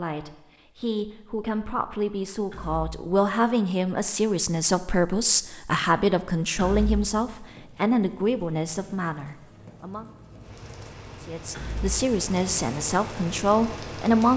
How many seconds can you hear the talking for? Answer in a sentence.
The talking can be heard for 13 seconds in total.